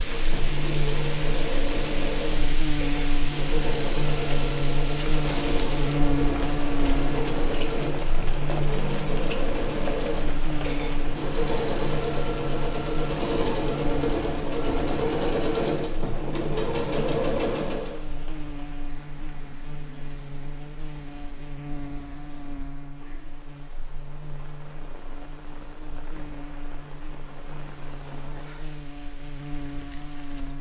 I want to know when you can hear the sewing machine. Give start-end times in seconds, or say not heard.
0.0-18.0.